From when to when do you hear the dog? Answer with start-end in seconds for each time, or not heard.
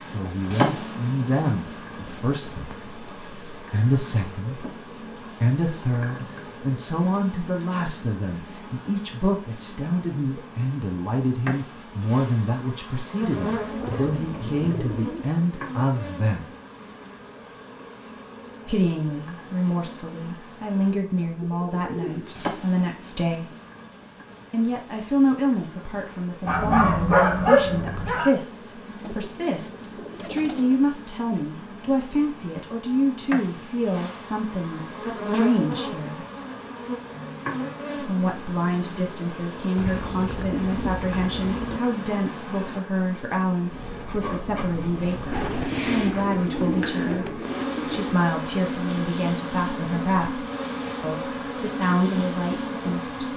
26.4-28.3.